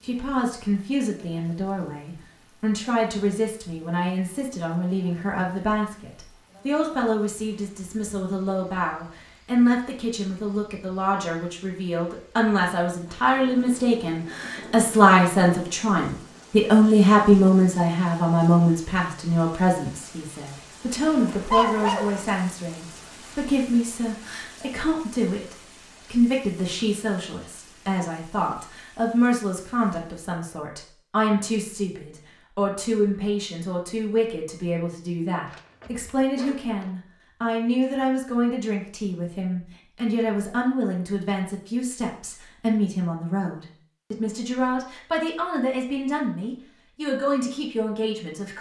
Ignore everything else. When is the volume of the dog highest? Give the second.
22 s.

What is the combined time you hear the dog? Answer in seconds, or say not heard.
3 s.